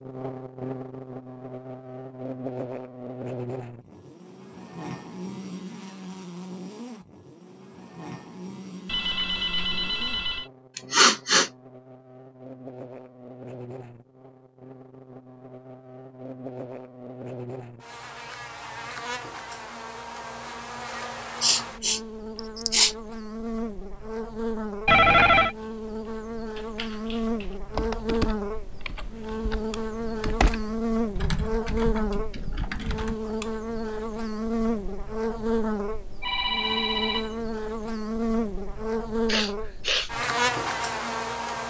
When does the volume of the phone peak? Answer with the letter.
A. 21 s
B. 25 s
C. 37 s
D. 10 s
B.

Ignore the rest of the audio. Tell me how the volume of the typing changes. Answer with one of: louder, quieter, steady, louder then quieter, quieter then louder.
steady.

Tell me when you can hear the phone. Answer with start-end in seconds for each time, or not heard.
8.8-10.5, 24.9-25.6, 36.2-37.4.